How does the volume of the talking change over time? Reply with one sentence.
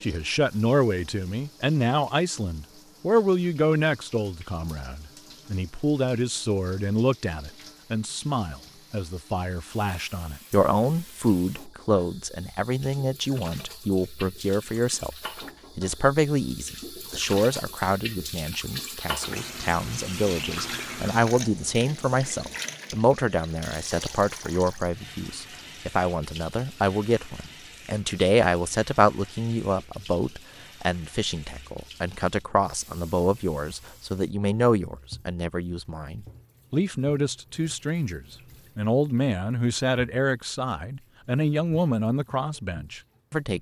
The loudness of the talking stays about the same.